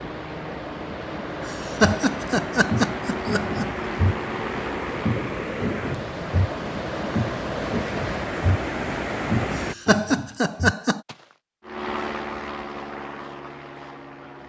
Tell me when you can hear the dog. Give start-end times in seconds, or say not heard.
not heard.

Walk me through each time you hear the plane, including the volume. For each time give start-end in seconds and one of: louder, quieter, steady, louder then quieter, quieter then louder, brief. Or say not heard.
0.0-5.1 louder
11.6-14.4 brief.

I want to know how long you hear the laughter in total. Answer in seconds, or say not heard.
4 s.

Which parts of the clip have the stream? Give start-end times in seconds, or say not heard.
0.0-9.8.